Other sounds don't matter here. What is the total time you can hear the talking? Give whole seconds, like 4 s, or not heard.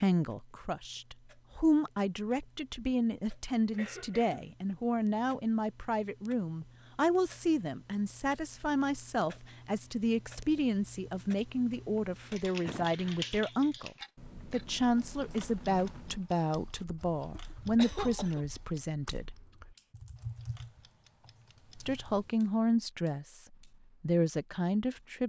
22 s.